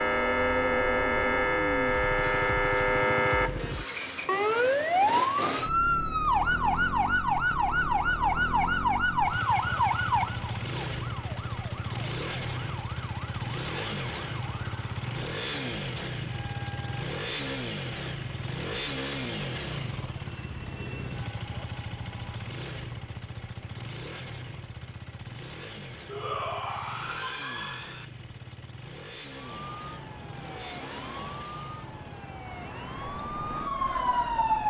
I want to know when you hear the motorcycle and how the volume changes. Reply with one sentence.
The motorcycle can be heard from 0.0 to 34.6 s, getting quieter.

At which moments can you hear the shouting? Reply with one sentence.
The shouting can be heard from 26.1 to 28.1 s.